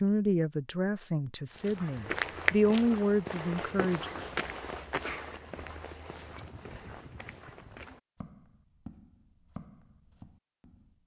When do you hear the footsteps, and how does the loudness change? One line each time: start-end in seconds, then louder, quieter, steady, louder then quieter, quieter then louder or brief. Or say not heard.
1.6-11.0 quieter.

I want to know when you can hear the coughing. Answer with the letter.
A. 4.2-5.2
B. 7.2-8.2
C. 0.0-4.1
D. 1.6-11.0
A.